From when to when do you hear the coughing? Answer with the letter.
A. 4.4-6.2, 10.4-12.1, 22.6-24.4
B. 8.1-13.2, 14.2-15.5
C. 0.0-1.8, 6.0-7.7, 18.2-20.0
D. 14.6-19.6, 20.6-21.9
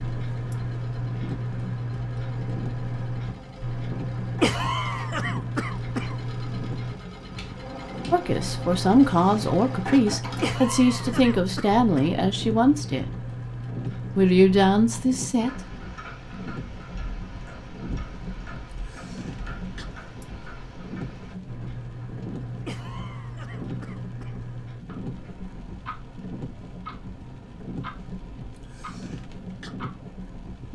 A.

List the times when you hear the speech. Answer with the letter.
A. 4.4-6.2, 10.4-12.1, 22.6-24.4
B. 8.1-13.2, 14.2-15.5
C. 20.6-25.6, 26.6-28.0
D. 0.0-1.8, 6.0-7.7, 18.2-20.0
B.